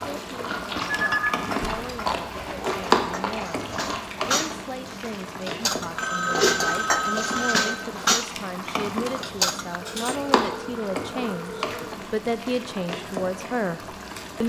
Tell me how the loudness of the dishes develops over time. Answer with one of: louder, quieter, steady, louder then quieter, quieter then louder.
louder.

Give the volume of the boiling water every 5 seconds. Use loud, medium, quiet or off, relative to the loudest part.
loud, medium, loud.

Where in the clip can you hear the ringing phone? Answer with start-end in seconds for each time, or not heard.
0.8-1.9, 6.0-7.7, 9.8-11.9.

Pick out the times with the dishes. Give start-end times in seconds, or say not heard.
0.6-10.2.